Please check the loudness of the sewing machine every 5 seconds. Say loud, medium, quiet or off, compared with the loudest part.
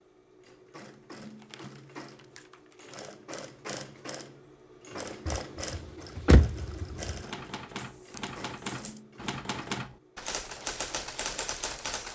loud, loud, medium.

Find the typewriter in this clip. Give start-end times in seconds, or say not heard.
7.2-12.0.